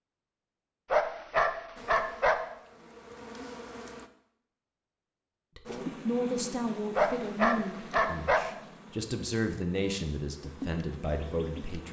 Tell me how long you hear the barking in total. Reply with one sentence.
You can hear the barking for 3 seconds altogether.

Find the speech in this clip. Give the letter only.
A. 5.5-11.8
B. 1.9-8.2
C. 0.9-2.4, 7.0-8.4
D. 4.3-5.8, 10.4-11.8
A.